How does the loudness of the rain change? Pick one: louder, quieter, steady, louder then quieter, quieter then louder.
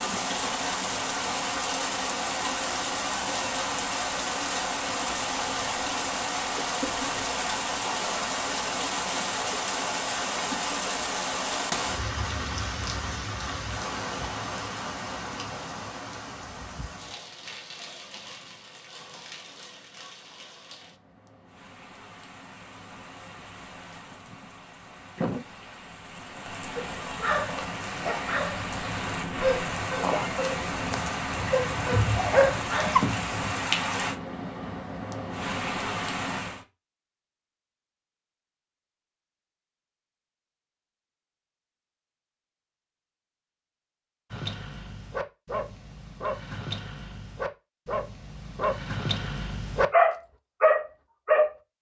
quieter then louder.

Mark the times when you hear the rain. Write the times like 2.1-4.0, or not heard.
0.0-36.6.